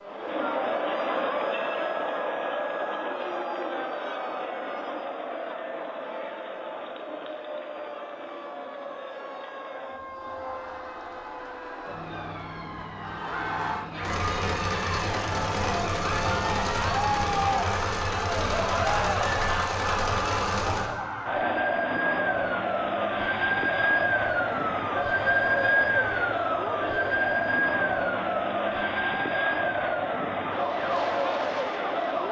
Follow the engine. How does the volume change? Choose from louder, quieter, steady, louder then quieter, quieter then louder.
steady.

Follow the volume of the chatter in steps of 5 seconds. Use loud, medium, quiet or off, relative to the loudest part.
loud, medium, medium, loud, loud, loud, loud.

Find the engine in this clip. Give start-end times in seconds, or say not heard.
14.0-20.9.